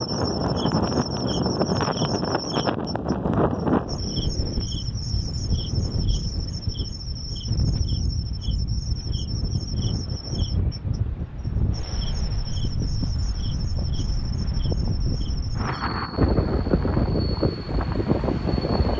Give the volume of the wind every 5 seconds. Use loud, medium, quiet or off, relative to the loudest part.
loud, medium, medium, loud.